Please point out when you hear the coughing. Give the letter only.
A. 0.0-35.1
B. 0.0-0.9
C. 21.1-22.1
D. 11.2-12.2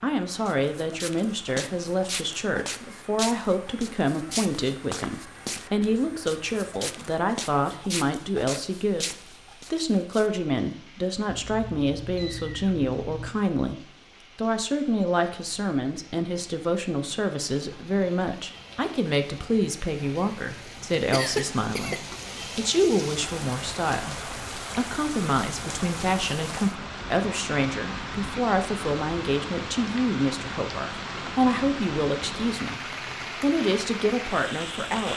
C.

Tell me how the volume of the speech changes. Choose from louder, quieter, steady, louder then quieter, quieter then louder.
steady.